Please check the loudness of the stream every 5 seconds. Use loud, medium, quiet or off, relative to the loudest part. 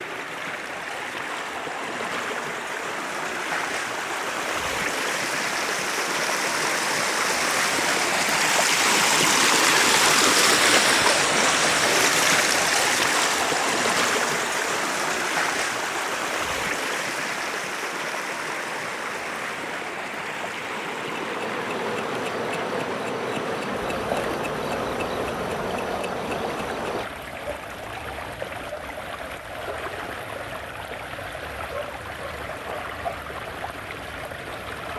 medium, loud, loud, medium, quiet, quiet, quiet.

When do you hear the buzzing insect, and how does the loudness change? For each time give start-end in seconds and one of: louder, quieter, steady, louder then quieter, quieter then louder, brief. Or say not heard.
18.7-27.1 louder.